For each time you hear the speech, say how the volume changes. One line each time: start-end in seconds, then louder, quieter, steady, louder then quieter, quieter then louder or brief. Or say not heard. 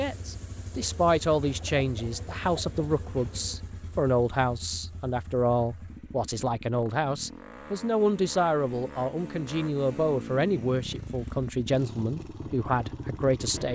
0.0-13.7 steady.